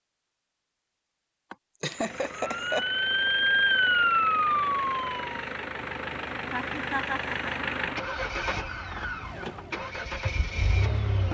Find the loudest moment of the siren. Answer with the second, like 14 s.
4 s.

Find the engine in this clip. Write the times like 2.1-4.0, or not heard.
1.9-11.2.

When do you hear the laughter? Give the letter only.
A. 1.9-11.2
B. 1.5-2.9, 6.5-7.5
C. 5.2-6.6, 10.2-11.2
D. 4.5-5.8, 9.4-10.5
B.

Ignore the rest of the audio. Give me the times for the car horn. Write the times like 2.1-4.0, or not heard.
not heard.